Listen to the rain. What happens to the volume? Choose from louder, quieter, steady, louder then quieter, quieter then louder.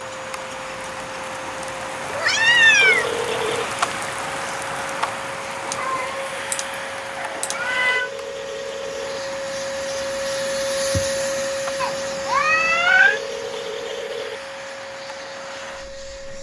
quieter.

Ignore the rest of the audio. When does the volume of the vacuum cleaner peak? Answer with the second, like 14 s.
11 s.